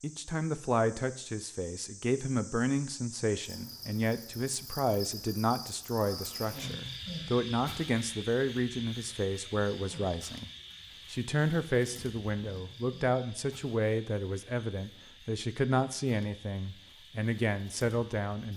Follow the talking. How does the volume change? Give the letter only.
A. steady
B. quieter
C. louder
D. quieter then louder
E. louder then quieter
A.